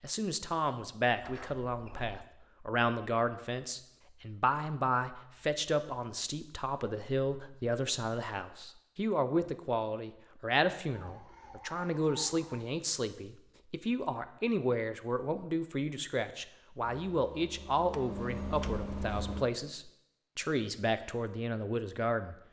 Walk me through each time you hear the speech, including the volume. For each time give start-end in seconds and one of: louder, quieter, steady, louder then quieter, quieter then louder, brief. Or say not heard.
0.0-22.4 steady.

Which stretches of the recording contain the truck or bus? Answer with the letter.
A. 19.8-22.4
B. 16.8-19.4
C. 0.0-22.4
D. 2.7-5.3
B.